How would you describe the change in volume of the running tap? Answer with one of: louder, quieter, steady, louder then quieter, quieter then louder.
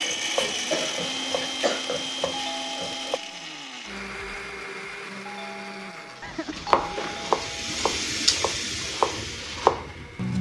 louder then quieter.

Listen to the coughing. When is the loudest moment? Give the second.
1 s.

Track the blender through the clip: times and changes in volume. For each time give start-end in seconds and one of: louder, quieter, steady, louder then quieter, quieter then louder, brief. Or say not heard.
0.0-10.3 quieter.